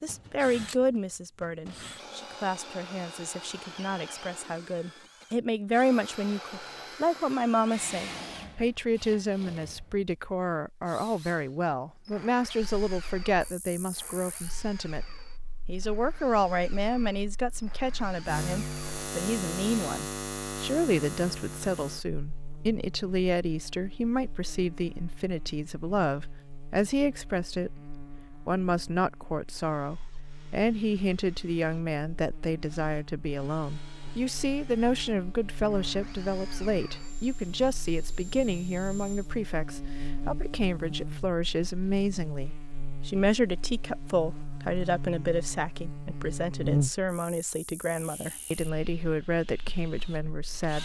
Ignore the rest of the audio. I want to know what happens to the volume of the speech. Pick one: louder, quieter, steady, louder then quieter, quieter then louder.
steady.